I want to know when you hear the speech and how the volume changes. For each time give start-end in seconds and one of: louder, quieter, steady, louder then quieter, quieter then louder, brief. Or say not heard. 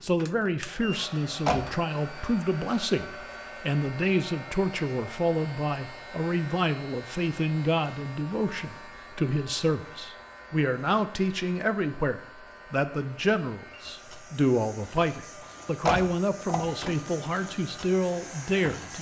0.0-18.9 steady.